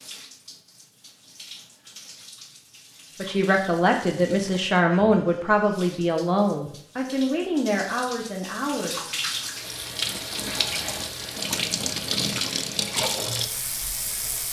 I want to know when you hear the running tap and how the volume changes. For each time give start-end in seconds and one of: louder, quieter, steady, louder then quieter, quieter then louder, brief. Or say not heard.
0.0-14.4 louder.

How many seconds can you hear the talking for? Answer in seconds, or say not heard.
6 s.